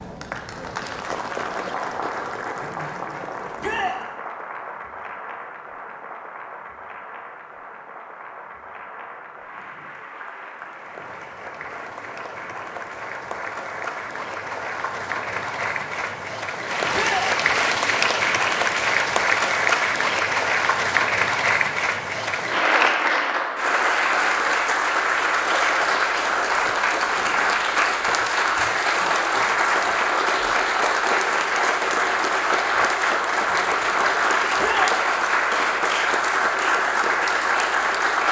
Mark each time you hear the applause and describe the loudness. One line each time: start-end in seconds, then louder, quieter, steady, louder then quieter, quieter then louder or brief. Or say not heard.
0.0-38.2 louder.